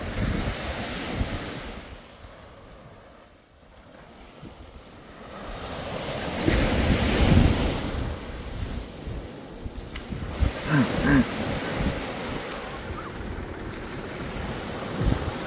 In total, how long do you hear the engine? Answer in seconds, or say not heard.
3 s.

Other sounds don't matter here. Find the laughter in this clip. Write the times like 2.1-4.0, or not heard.
10.1-11.2.